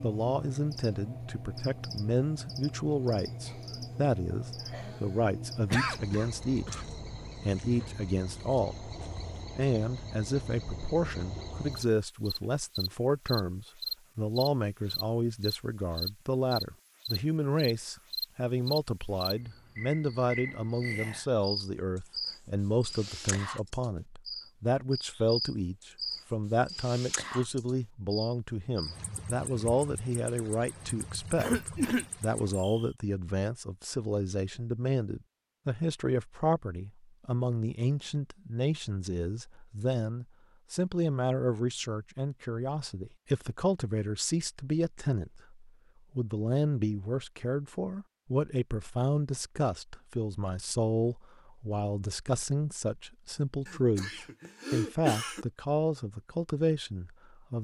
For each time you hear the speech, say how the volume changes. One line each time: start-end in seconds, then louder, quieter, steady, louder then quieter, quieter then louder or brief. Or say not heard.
0.0-57.5 steady.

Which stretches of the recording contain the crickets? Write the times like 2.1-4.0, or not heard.
0.0-32.9.